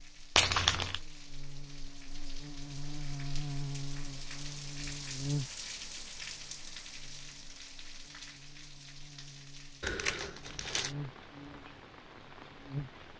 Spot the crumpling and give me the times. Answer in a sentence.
You can hear the crumpling from 0.3 to 1.0 s and from 9.8 to 10.9 s.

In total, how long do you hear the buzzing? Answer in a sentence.
You can hear the buzzing for 13 seconds altogether.